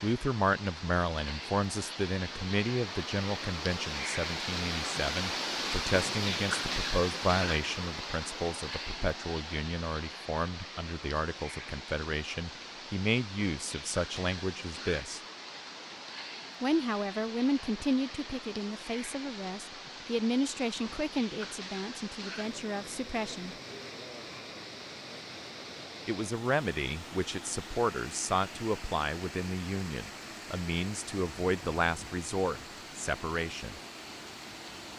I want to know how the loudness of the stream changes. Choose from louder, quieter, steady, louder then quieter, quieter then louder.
quieter.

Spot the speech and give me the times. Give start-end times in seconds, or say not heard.
0.0-15.2, 16.6-23.6, 26.1-33.8.